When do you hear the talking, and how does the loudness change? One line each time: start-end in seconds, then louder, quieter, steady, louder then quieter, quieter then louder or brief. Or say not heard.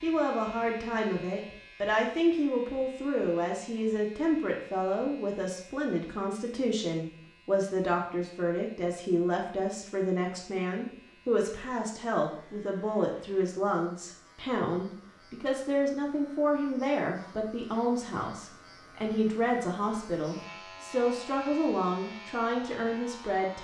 0.0-23.5 steady.